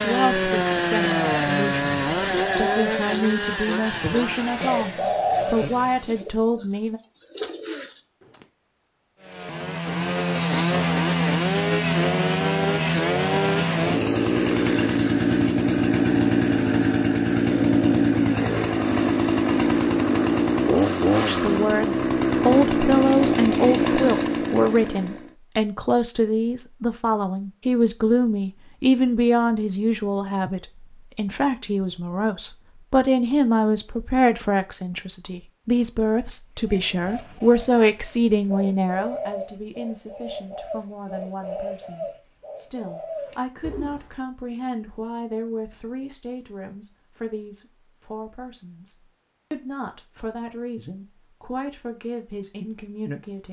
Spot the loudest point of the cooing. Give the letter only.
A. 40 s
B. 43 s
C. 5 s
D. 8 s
C.